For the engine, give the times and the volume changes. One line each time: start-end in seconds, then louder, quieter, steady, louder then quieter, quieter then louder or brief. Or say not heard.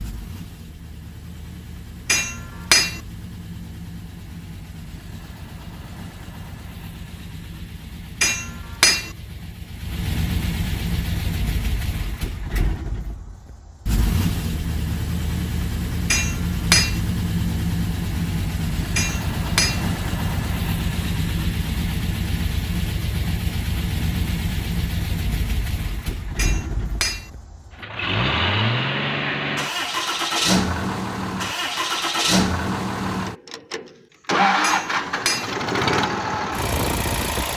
0.0-37.5 louder.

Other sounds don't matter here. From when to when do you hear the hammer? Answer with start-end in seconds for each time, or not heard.
2.0-3.0, 8.2-9.1, 16.1-17.0, 18.9-19.9, 26.4-27.3, 34.6-35.5.